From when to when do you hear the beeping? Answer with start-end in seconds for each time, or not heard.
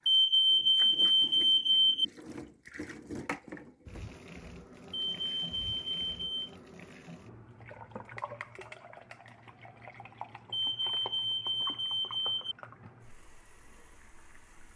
0.1-2.0, 4.9-6.5, 10.5-12.6.